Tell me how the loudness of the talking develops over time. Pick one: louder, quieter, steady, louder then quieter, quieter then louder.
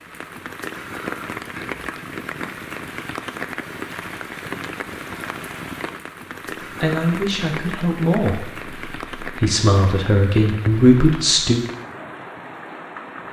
louder.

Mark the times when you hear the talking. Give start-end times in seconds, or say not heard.
6.7-11.6.